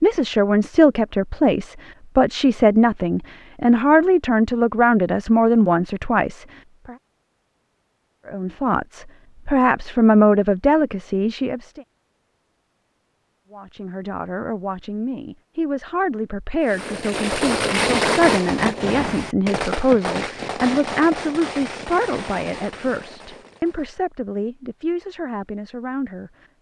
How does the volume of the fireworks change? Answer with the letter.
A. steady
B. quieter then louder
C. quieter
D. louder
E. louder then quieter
C.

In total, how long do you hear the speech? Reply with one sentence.
The speech can be heard for 23 seconds in total.